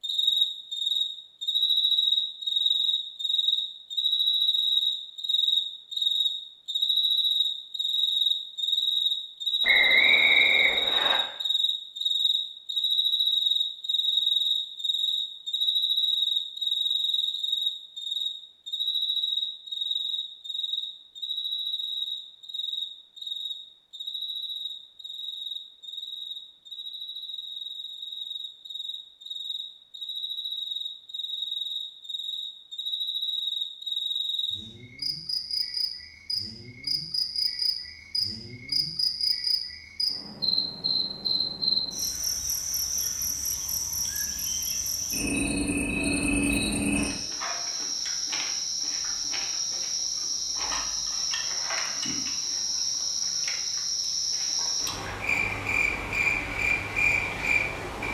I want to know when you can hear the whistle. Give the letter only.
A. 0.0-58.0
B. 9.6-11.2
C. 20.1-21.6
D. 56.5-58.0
B.